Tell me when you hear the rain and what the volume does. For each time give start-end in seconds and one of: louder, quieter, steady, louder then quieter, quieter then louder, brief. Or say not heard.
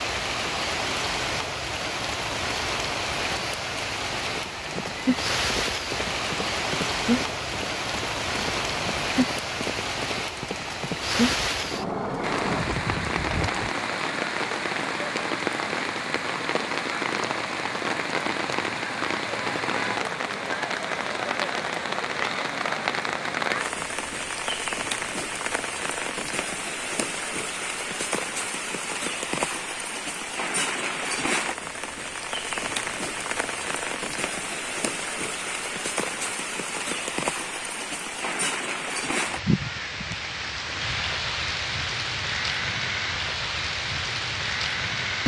0.0-45.2 steady.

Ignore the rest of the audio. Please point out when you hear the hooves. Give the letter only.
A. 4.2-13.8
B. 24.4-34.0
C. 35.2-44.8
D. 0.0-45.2
A.